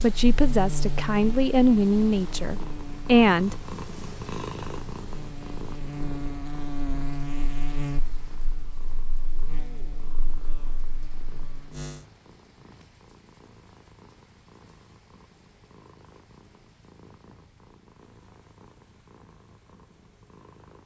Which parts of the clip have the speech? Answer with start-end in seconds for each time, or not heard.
0.0-3.6.